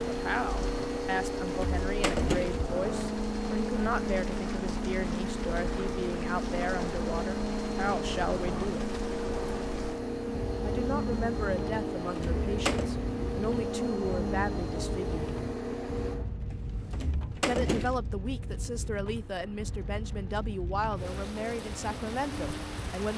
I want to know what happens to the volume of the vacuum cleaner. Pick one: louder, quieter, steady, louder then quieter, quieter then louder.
quieter.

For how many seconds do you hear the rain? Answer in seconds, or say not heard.
23 s.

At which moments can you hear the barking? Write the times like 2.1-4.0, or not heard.
not heard.